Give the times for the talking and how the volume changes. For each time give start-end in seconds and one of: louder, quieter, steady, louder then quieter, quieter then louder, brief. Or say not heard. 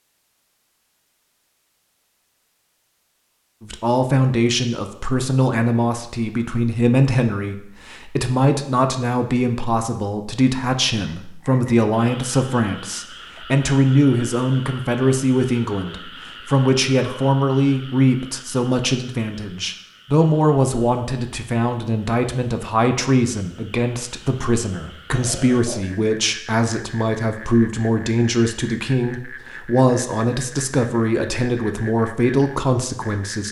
3.6-33.4 steady.